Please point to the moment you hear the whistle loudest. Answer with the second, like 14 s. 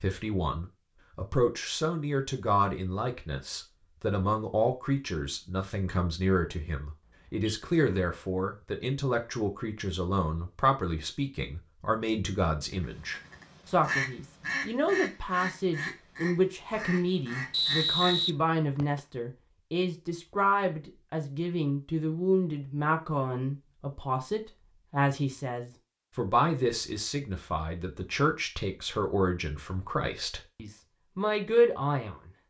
18 s.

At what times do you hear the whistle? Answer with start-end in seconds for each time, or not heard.
7.0-7.5, 17.5-19.0.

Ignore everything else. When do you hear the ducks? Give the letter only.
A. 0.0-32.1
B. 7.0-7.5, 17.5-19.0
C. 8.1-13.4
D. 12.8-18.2
D.